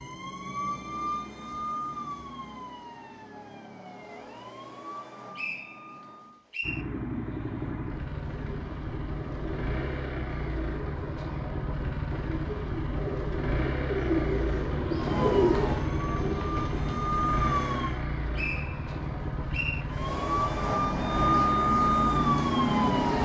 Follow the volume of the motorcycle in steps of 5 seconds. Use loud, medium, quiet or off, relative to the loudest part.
off, loud, loud, loud, loud.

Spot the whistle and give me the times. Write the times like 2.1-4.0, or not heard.
5.3-6.8, 18.4-19.9.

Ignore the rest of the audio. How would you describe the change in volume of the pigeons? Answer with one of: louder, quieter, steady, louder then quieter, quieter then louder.
louder.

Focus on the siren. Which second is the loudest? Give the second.
22 s.